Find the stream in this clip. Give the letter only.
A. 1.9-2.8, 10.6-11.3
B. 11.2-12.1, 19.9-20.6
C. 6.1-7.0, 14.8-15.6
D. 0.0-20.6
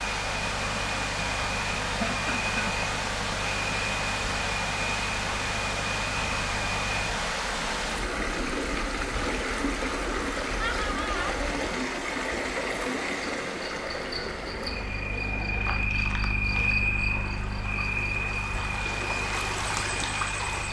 D.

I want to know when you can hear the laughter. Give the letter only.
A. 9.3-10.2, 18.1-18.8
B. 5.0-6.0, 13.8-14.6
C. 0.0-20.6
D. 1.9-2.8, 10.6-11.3
D.